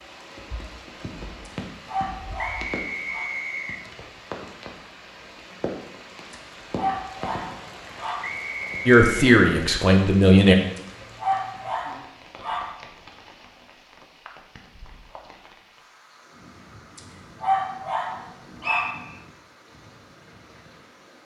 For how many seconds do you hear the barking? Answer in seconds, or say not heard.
8 s.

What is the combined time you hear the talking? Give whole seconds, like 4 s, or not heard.
2 s.